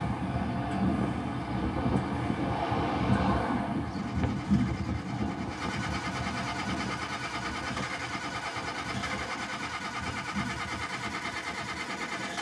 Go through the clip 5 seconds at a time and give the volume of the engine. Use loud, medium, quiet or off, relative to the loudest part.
medium, loud, loud.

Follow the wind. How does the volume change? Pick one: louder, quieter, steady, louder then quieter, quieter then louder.
quieter.